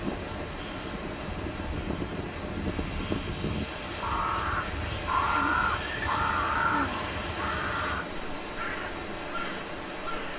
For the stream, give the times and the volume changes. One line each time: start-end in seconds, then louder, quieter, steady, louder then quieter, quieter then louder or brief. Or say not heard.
0.0-10.3 steady.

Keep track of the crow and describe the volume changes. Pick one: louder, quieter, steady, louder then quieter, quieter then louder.
louder then quieter.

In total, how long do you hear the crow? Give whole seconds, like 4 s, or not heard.
10 s.